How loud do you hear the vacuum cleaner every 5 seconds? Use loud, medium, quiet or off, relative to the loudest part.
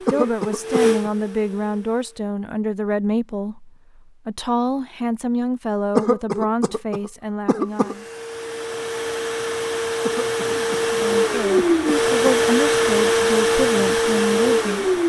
medium, medium, loud.